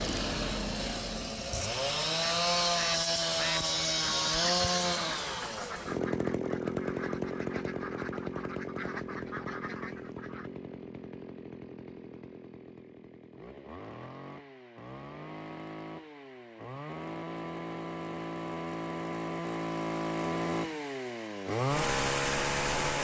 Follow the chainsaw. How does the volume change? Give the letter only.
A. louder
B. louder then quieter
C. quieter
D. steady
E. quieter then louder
E.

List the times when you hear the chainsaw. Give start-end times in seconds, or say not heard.
0.0-22.9.